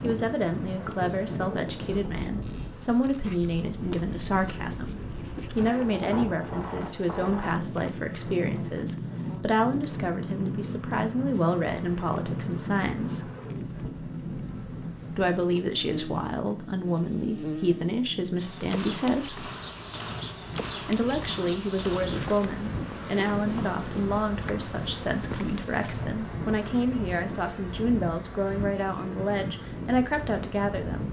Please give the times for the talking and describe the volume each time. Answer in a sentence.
You can hear the talking from 0.0 to 13.3 s, at a steady volume; from 15.1 to 19.5 s, at a steady volume; and from 20.9 to 31.0 s, at a steady volume.